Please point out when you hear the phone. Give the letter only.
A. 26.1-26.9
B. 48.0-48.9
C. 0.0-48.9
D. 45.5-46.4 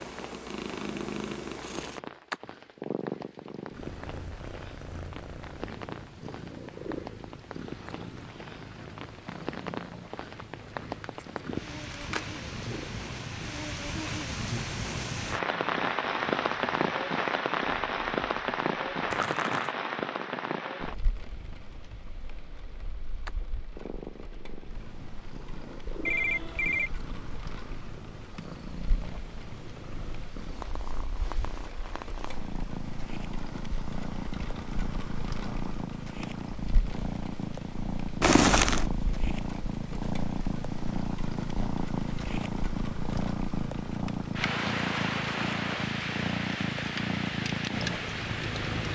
A.